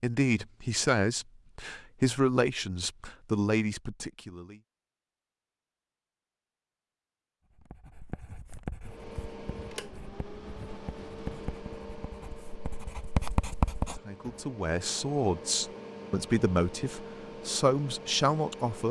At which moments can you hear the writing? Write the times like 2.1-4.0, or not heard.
7.5-14.4.